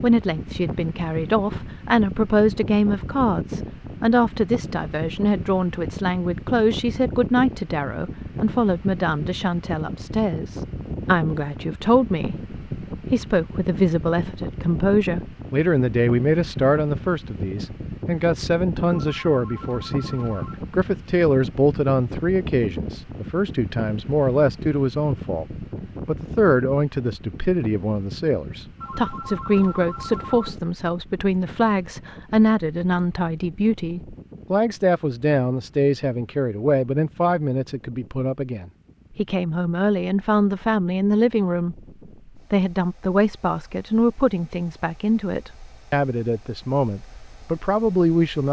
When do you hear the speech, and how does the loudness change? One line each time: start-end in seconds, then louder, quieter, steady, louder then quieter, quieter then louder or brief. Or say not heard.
0.0-25.4 steady
26.1-41.8 steady
42.5-48.4 steady.